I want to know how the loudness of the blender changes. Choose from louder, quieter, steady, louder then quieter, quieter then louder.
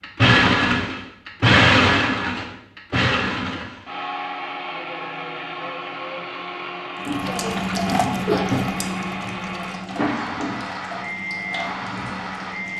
quieter.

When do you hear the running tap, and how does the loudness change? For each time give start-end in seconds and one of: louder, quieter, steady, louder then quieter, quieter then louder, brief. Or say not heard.
7.0-12.7 quieter.